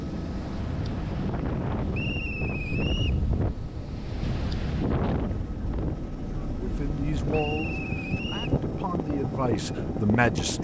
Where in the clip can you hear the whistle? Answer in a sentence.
The whistle can be heard from 1.9 to 3.2 s and from 7.3 to 8.6 s.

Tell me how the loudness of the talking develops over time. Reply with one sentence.
The volume of the talking goes down, then up.